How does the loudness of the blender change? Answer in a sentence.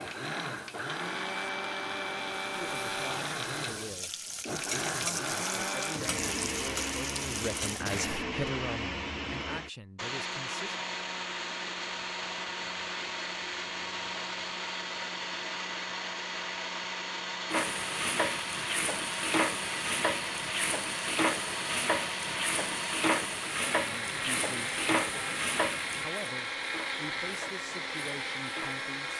The volume of the blender stays about the same.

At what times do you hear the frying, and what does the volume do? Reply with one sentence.
You can hear the frying from 0.0 to 8.2 s, getting louder; and from 17.5 to 29.1 s, getting quieter.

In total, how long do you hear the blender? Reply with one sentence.
The blender can be heard for 29 seconds in total.